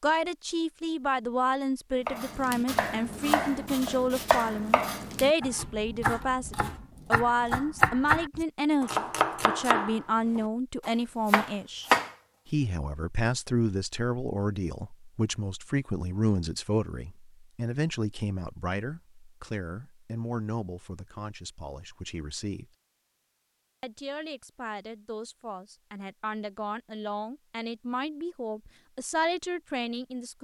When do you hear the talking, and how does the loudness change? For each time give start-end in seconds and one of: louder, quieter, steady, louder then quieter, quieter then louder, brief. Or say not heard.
0.0-22.7 quieter
23.8-30.3 louder.